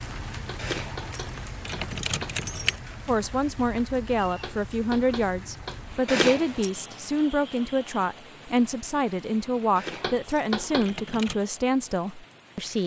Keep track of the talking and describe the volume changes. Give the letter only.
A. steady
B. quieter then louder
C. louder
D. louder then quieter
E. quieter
A.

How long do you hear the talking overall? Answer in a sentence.
The talking can be heard for 10 seconds in total.